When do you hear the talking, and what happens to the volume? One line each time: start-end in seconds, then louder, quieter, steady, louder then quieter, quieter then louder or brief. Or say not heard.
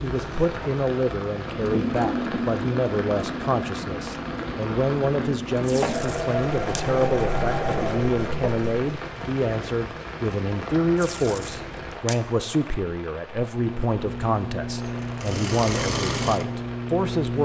0.0-17.4 steady.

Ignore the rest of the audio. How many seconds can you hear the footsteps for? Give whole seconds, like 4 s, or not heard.
not heard.